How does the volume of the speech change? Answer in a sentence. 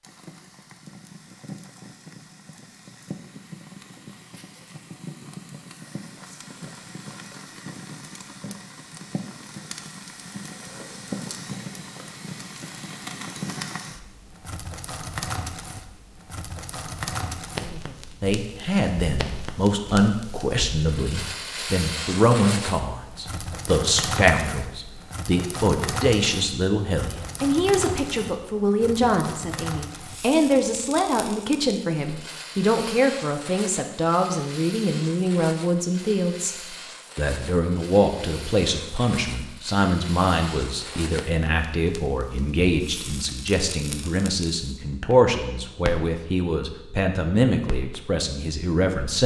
The loudness of the speech stays about the same.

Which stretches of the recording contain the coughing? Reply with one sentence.
You can't hear the coughing here.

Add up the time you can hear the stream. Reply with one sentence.
You can't hear the stream here.